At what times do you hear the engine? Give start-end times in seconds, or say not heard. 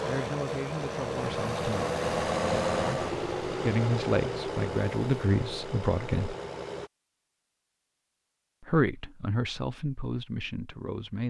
0.0-6.9.